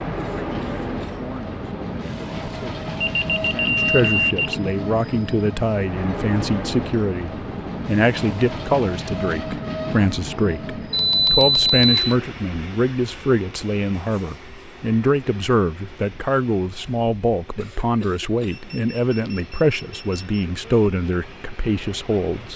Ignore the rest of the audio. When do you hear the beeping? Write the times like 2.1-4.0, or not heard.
3.0-4.5, 10.9-12.2, 18.5-20.4.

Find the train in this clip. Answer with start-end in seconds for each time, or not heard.
0.0-22.5.